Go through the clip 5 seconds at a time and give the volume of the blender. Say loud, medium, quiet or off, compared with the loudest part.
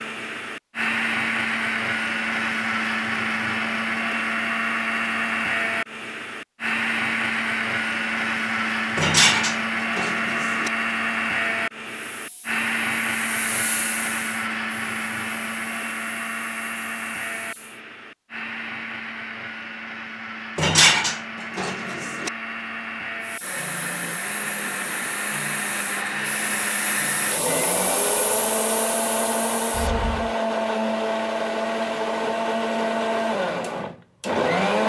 loud, loud, loud, medium, medium, loud, loud.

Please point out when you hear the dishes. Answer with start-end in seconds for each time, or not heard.
8.9-10.7, 20.6-22.3.